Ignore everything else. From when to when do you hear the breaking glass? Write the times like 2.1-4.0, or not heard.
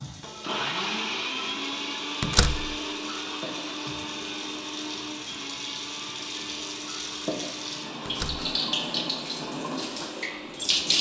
not heard.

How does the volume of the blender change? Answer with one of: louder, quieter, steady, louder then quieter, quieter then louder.
quieter.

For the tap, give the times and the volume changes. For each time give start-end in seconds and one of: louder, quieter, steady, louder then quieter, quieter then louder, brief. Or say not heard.
0.0-10.9 louder.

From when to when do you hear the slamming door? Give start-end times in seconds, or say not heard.
2.2-2.8, 8.1-8.5.